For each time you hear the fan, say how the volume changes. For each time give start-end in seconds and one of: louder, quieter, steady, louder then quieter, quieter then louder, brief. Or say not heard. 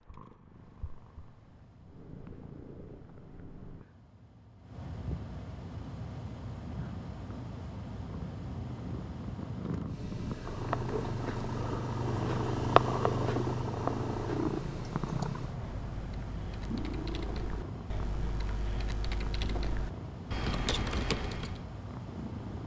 0.0-22.6 louder.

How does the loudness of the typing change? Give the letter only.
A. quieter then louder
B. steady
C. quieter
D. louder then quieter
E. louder
E.